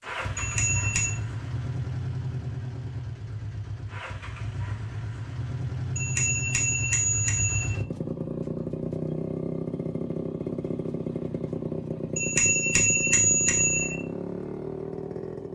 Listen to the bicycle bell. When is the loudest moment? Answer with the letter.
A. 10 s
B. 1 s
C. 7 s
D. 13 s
D.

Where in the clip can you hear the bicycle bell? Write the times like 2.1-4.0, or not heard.
0.3-1.1, 6.0-7.8, 12.2-13.9.